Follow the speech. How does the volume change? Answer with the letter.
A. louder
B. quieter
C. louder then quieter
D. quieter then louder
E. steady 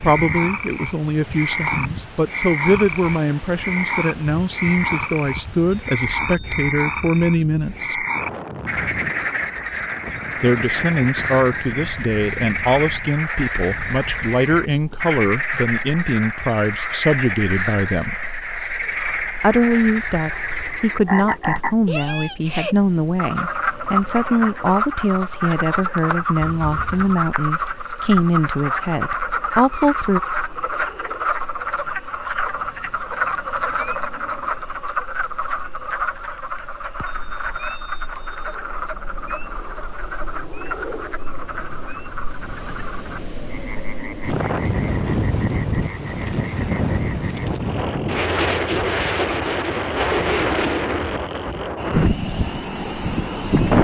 E.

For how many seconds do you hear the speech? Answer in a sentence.
You can hear the speech for 27 seconds altogether.